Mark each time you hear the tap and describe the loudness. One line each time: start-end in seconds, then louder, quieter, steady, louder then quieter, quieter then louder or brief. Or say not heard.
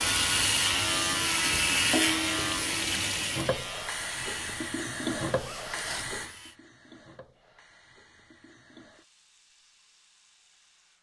0.0-10.9 quieter.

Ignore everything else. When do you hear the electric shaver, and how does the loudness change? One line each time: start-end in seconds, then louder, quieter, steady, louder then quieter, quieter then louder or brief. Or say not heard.
0.0-6.5 quieter.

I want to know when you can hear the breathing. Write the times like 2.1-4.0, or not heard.
not heard.